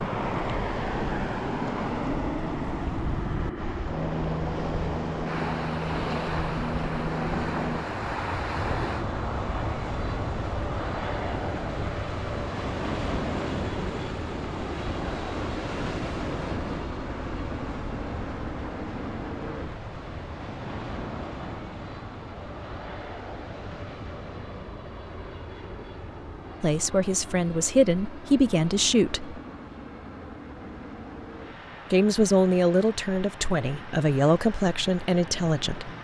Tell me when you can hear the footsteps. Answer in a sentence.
The footsteps can't be heard in this clip.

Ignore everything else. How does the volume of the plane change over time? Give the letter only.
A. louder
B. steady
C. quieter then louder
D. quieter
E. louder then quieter
D.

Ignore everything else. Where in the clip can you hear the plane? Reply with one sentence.
You can hear the plane from 0.0 to 36.0 s.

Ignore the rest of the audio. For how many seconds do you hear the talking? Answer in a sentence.
You can hear the talking for 7 seconds altogether.